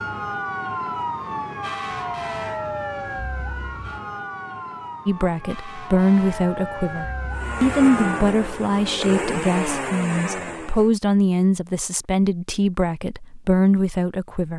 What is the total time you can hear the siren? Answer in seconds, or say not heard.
8 s.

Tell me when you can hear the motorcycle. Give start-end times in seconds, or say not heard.
7.3-10.9.